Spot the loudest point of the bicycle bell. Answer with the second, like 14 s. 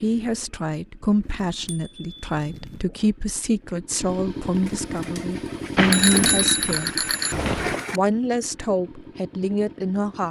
6 s.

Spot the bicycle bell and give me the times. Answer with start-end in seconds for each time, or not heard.
1.4-2.9, 5.8-7.8.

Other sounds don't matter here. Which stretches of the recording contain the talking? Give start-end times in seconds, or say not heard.
0.0-6.9, 7.9-10.2.